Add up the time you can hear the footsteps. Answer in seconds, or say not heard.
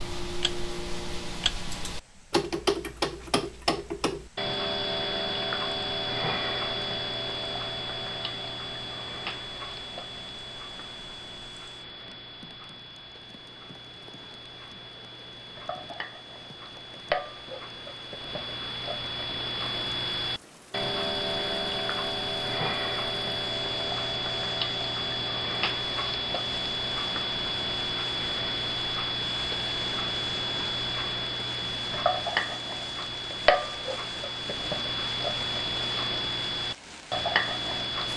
not heard.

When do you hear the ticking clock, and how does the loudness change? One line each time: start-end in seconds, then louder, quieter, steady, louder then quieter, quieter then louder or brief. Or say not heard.
0.0-38.1 quieter then louder.